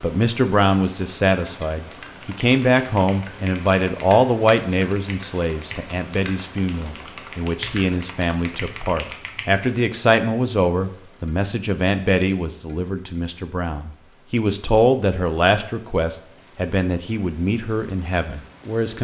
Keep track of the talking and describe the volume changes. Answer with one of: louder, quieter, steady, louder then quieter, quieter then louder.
steady.